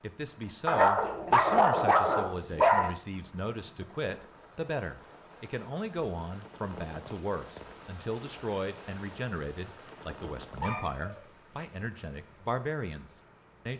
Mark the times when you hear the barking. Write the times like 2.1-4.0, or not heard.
0.7-3.0, 9.8-11.2.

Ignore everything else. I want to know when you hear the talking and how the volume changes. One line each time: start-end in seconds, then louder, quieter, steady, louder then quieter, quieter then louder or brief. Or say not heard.
0.0-13.7 steady.